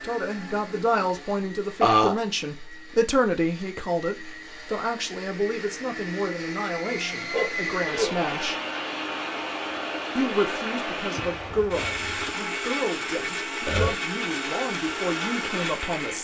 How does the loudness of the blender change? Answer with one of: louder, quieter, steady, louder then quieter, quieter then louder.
louder.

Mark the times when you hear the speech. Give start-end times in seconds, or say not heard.
0.0-8.6, 10.2-16.2.